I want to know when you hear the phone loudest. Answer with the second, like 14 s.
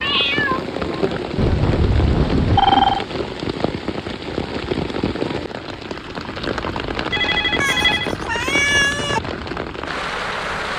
3 s.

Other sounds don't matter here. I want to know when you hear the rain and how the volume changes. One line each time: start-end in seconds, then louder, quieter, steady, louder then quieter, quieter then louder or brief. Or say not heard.
0.0-10.7 steady.